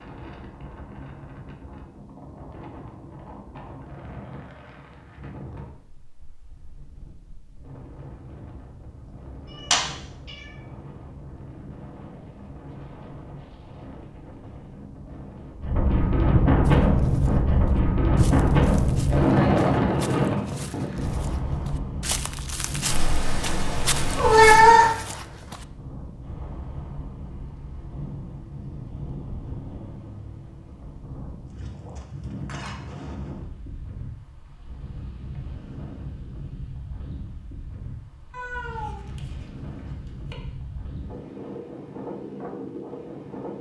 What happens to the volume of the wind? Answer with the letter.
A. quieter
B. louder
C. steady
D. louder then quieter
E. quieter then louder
D.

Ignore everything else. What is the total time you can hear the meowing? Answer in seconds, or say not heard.
5 s.